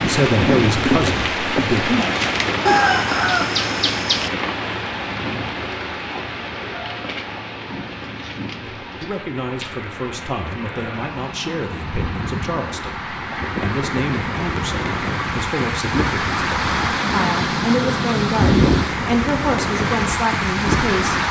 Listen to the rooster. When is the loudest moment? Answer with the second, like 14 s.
3 s.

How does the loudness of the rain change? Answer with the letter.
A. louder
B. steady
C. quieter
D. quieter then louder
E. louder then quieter
D.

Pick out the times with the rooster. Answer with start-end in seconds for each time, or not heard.
2.6-4.3.